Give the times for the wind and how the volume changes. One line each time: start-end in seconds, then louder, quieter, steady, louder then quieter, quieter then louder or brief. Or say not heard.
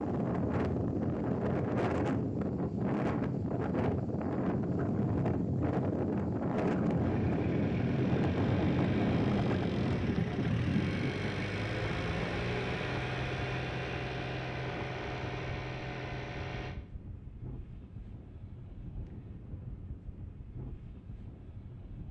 0.0-22.0 quieter.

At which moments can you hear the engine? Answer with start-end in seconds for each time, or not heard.
7.0-16.8.